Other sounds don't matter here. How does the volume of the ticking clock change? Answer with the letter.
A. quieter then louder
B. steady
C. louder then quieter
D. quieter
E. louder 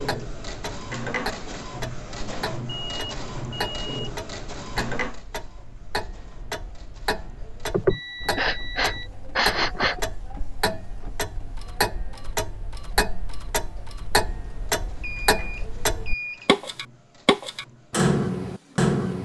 E.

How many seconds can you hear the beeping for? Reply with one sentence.
The beeping can be heard for 4 seconds in total.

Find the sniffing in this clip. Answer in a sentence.
The sniffing can be heard from 7.7 to 10.0 s.